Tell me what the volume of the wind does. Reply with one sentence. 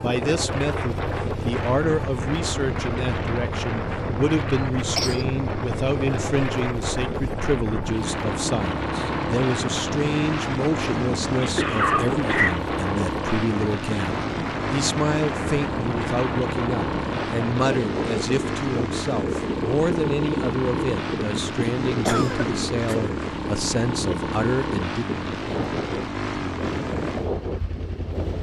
The loudness of the wind stays about the same.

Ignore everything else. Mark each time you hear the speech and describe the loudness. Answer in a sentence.
You can hear the speech from 0.0 to 25.1 s, at a steady volume.